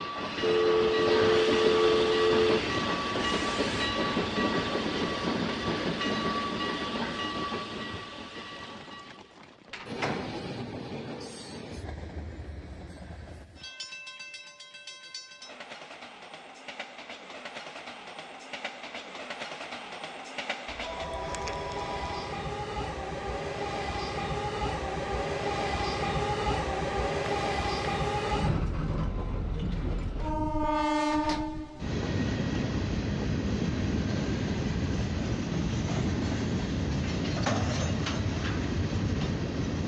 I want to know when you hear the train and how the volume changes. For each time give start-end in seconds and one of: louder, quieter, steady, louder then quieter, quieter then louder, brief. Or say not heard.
0.0-39.8 quieter then louder.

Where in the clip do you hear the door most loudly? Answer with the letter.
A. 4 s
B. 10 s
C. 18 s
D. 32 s
B.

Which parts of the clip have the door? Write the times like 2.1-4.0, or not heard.
9.7-10.4, 30.9-31.5.